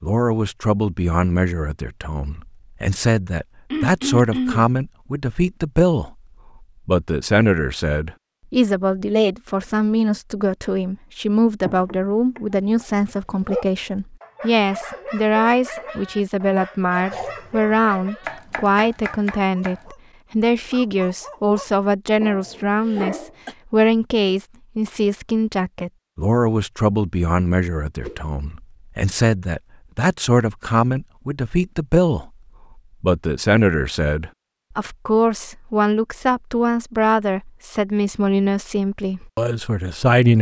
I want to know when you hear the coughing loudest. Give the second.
4 s.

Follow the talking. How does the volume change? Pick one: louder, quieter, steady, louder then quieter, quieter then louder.
steady.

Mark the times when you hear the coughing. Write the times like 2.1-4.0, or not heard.
3.7-4.7, 22.8-23.6.